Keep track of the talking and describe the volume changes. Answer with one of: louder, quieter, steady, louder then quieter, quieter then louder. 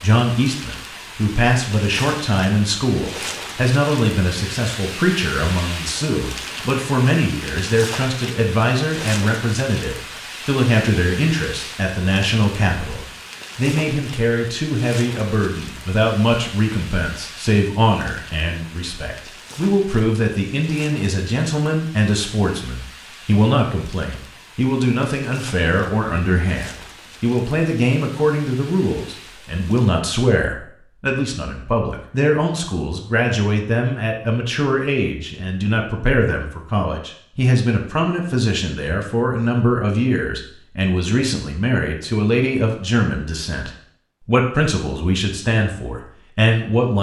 steady.